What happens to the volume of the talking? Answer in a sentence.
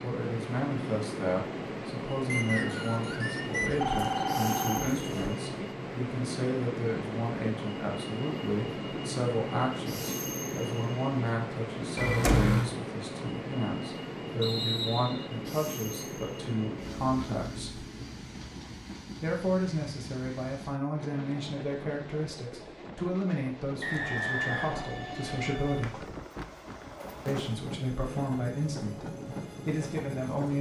The loudness of the talking stays about the same.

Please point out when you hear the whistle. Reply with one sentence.
The whistle can be heard from 2.2 to 3.9 s, from 14.4 to 15.2 s and from 23.8 to 24.9 s.